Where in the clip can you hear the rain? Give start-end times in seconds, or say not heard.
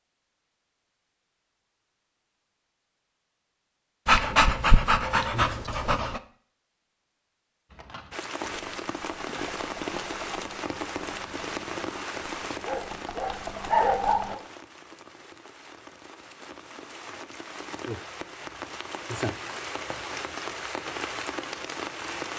8.1-22.3.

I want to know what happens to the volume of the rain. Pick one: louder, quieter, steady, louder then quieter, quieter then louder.
quieter then louder.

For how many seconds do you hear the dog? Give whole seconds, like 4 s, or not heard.
4 s.